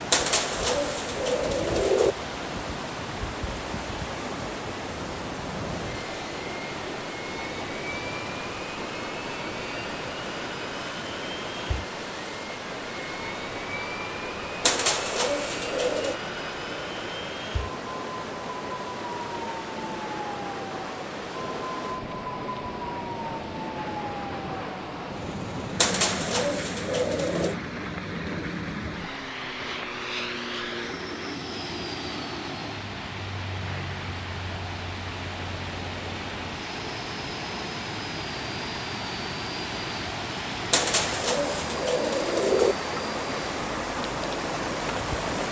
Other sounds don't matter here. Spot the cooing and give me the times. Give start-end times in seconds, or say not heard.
0.1-2.1, 14.6-16.2, 25.8-27.6, 40.7-42.8.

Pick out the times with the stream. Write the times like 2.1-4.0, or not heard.
0.0-45.4.